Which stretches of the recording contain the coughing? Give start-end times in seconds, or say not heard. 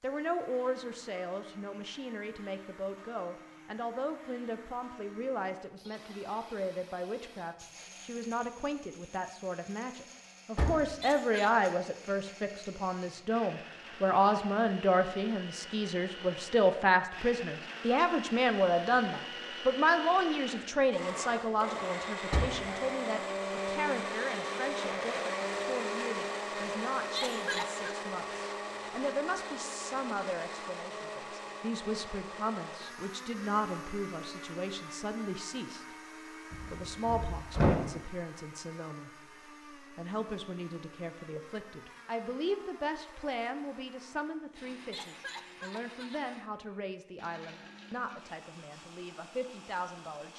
11.0-11.6, 27.1-28.0, 44.9-46.2.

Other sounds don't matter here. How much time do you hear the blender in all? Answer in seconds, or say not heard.
50 s.